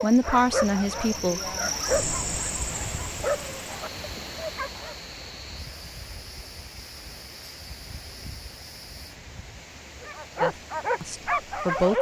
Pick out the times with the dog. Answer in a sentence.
You can hear the dog from 0.0 to 5.0 s and from 10.0 to 11.9 s.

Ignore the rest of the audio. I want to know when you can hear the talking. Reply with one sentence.
The talking can be heard from 0.0 to 1.4 s and from 10.4 to 11.9 s.